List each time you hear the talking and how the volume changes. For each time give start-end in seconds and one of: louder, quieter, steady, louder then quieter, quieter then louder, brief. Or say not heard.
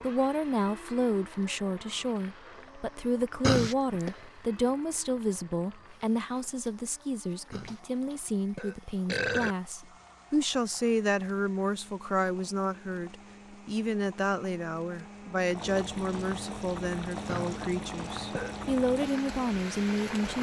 0.0-20.3 steady.